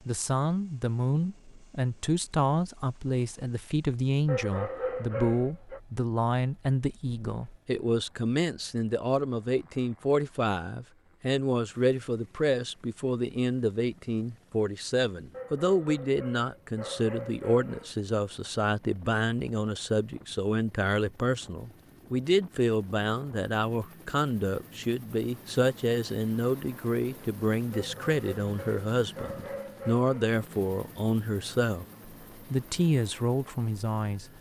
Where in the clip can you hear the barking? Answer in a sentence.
You can hear the barking from 4.2 to 5.8 s, from 15.3 to 17.9 s and from 27.7 to 30.4 s.